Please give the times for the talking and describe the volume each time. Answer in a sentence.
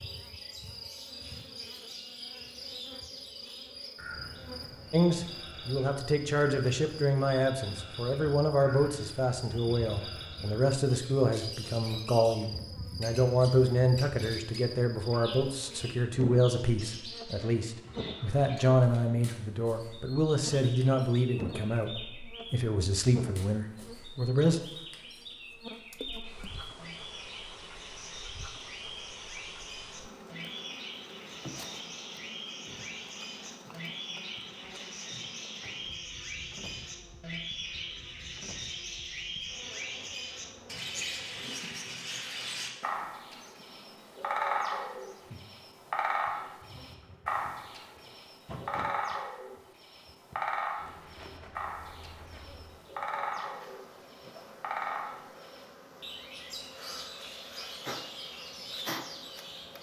You can hear the talking from 4.9 to 24.6 s, at a steady volume.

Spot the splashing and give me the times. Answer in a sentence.
You can hear the splashing from 25.9 to 26.6 s.